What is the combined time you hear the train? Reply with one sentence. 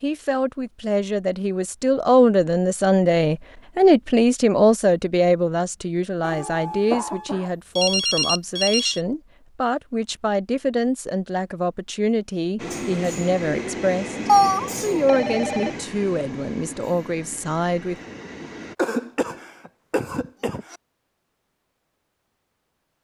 You can hear the train for 6 seconds altogether.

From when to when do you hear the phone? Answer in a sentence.
The phone can be heard from 6.2 to 9.0 s and from 14.2 to 15.7 s.